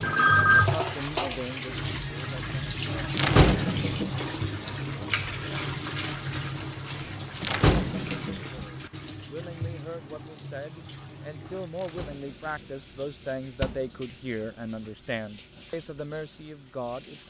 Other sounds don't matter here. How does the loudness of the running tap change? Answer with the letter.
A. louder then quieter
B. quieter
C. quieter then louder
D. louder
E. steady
B.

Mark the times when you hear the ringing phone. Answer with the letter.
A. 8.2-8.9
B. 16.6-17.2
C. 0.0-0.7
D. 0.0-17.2
C.